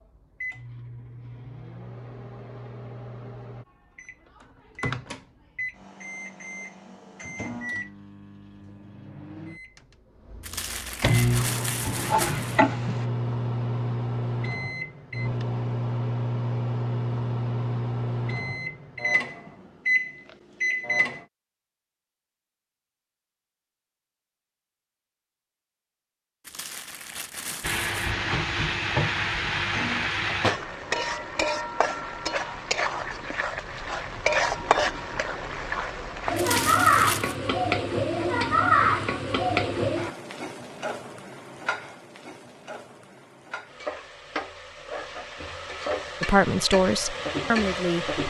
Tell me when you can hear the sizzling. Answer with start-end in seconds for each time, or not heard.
11.4-13.1, 27.6-48.2.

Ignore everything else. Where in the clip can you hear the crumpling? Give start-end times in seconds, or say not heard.
10.4-12.6, 26.4-28.1, 36.4-37.4.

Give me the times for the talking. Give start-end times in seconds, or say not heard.
46.2-48.1.